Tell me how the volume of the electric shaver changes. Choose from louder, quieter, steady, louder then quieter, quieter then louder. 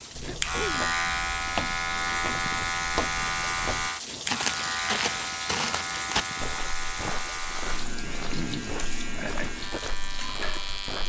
quieter.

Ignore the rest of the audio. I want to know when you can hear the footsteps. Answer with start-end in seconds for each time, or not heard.
0.1-11.0.